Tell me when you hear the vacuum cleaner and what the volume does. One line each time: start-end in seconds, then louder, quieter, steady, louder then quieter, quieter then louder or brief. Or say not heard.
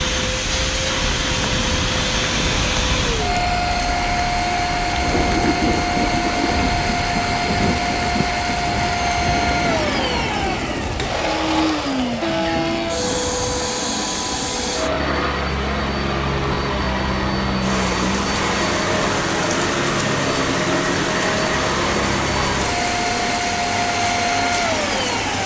0.0-25.4 steady.